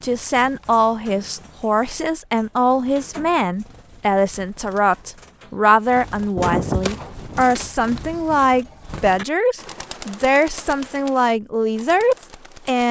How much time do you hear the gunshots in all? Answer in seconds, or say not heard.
2 s.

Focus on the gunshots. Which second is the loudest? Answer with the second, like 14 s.
7 s.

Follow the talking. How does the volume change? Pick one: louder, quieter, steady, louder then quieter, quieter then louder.
steady.